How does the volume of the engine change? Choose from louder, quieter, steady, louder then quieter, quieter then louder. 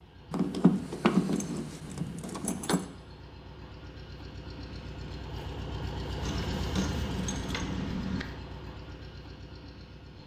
louder then quieter.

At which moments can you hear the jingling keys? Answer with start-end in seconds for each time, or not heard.
0.3-2.9, 6.2-8.2.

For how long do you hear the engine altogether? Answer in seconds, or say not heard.
10 s.